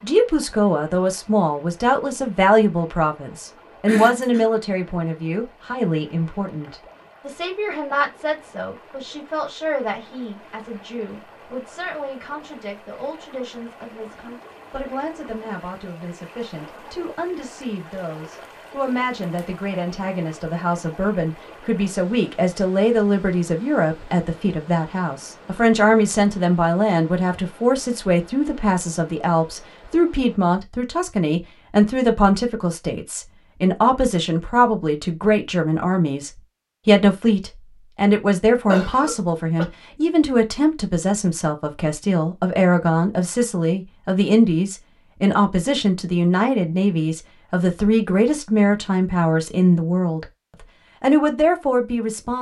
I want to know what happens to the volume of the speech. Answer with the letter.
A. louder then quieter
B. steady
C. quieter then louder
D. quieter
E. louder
C.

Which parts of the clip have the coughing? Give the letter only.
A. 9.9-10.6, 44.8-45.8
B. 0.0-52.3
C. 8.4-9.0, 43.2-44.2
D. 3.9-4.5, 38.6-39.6
D.